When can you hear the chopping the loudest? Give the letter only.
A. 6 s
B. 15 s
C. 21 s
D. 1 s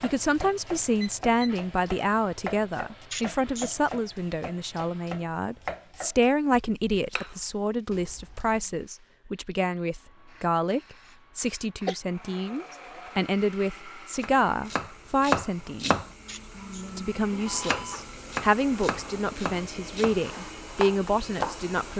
B.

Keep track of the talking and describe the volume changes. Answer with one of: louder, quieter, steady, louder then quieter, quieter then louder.
steady.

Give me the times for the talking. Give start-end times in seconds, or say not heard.
0.0-16.0, 16.9-21.9.